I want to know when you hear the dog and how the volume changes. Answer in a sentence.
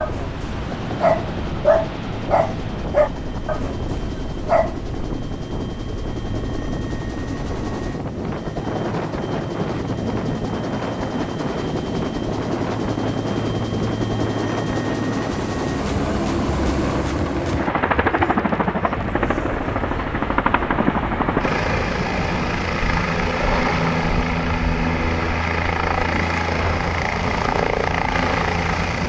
The dog can be heard from 0.0 to 4.8 s, getting quieter.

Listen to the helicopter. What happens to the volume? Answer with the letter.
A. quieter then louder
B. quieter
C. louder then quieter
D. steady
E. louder
E.